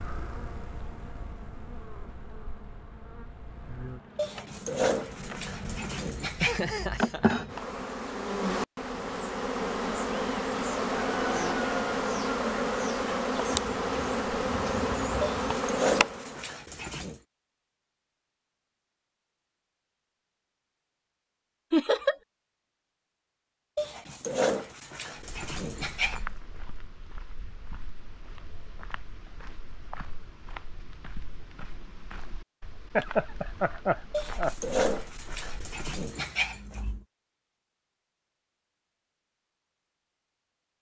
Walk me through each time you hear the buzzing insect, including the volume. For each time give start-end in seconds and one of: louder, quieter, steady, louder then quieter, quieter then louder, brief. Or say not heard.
0.0-16.5 louder.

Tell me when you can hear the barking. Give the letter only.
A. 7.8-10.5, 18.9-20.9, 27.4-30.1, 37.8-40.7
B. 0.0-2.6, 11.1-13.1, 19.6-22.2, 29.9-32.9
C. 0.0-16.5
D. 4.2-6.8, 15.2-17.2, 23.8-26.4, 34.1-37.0
D.